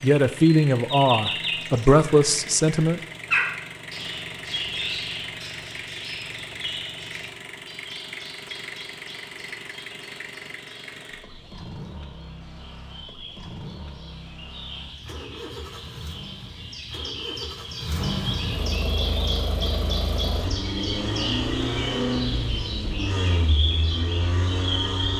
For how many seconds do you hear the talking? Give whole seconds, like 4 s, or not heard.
3 s.